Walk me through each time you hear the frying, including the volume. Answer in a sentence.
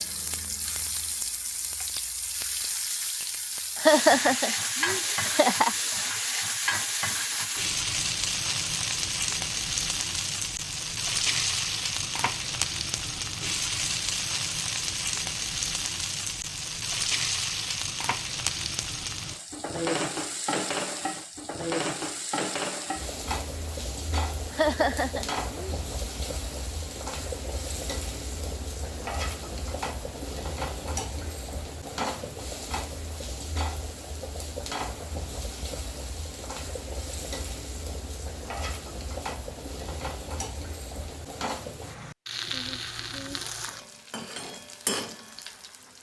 You can hear the frying from 0.0 to 45.9 s, getting quieter.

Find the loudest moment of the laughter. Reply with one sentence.
The volume of the laughter peaks at 4 seconds.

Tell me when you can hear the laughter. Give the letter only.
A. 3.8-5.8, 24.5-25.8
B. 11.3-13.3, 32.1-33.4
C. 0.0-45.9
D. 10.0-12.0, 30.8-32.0
A.